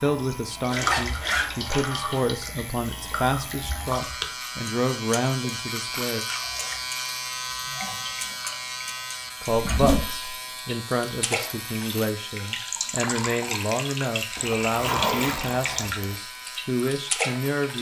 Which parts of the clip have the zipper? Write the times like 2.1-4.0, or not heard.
0.7-2.2, 9.7-10.3, 14.3-16.1.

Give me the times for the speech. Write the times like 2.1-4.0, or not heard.
0.0-6.2, 9.4-17.7.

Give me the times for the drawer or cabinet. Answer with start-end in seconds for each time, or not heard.
not heard.